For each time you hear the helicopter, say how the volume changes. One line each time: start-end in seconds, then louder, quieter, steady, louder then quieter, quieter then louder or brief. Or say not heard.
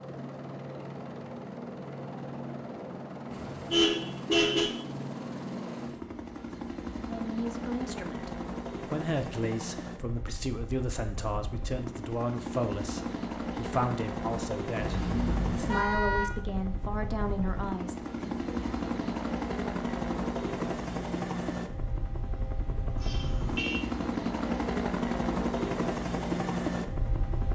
0.0-27.4 louder.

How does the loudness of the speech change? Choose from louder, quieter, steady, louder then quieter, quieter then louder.
steady.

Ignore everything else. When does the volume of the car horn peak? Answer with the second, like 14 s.
4 s.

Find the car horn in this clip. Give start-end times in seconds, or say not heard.
3.5-4.7, 14.8-16.3, 22.9-23.9.